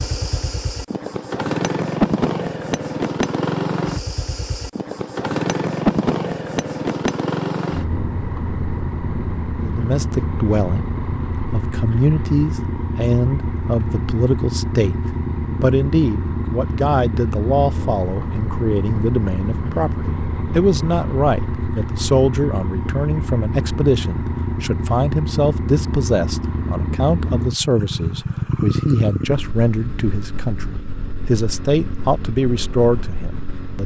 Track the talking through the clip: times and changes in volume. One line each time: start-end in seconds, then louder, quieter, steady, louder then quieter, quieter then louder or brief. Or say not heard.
9.6-33.8 steady.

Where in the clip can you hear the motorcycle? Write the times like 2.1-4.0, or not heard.
0.0-33.8.